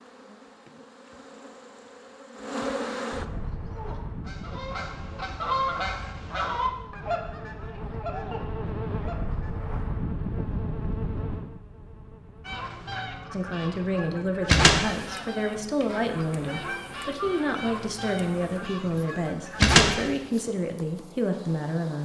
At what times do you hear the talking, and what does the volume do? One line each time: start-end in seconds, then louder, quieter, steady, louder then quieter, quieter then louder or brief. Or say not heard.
13.3-22.0 steady.